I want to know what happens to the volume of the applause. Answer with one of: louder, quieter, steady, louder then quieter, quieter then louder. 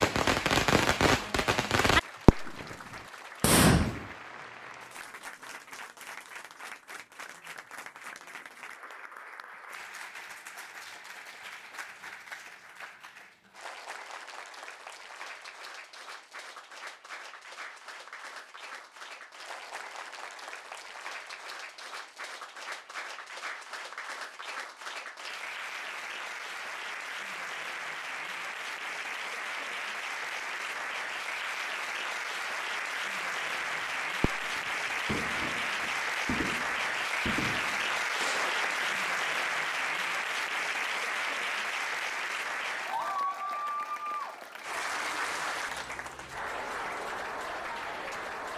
louder.